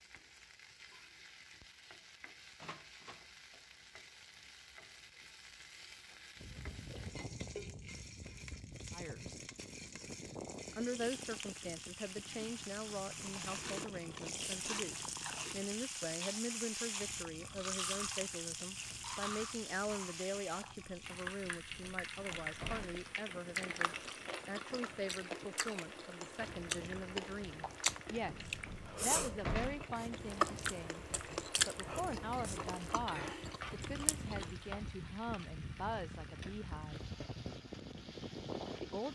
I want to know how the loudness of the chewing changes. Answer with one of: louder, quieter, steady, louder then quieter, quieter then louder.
louder.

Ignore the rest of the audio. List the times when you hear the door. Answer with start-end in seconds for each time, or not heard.
2.6-3.2, 21.4-23.1, 28.2-29.9.